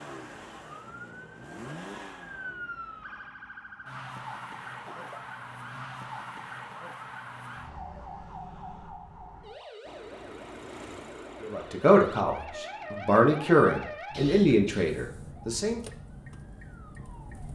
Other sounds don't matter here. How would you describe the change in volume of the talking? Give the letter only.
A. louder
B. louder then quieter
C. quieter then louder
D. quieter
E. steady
D.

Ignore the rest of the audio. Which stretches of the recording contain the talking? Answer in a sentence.
You can hear the talking from 11.4 to 15.8 s.